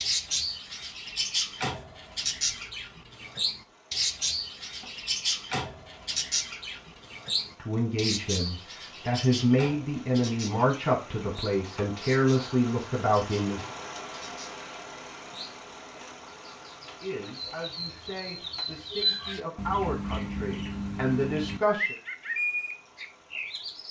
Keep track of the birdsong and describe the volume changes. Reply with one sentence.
The loudness of the birdsong goes down, then up.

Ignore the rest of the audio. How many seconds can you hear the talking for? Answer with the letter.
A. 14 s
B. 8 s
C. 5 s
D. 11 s
D.